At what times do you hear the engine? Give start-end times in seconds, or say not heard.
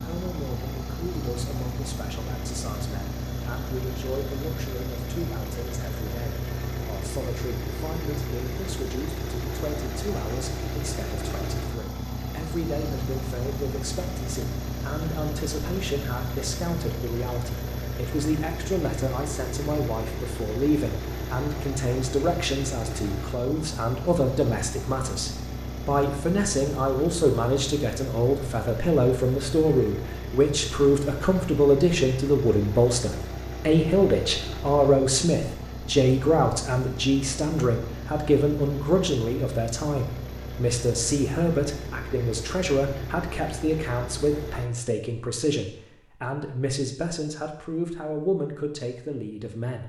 0.0-44.7.